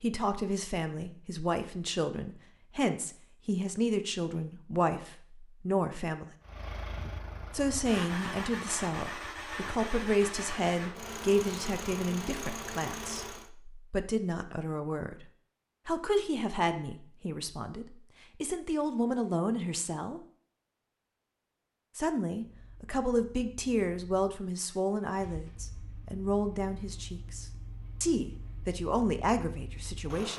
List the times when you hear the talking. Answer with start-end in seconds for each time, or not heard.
0.0-6.2, 7.5-20.2, 21.9-30.3.